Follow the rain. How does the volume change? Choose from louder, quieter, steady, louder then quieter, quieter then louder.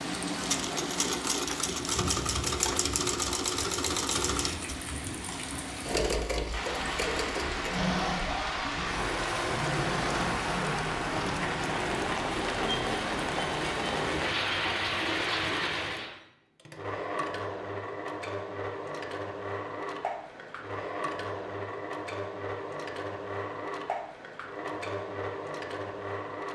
louder.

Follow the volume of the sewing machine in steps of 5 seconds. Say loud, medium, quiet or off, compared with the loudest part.
loud, loud, medium, medium, medium, medium.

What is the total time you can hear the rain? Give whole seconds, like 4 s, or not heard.
16 s.